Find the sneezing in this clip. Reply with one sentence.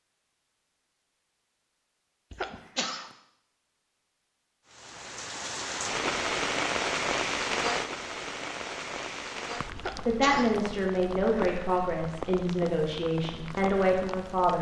You can hear the sneezing from 2.3 to 3.1 s and from 9.8 to 10.7 s.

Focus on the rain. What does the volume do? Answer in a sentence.
The volume of the rain goes down.